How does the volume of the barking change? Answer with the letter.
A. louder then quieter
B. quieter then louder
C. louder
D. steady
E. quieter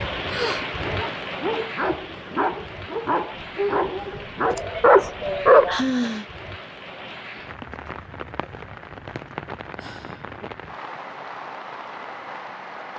C.